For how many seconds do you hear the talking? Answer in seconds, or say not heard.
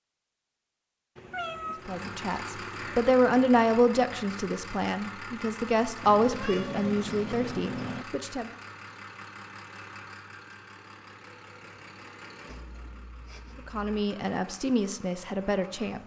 9 s.